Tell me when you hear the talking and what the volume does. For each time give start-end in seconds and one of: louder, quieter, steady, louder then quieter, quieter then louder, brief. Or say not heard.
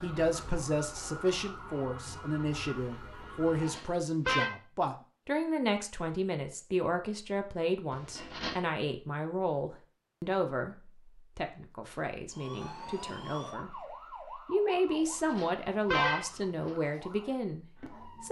0.0-18.2 quieter then louder.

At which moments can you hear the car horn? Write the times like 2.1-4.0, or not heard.
3.6-4.5, 7.9-8.6, 15.3-16.7.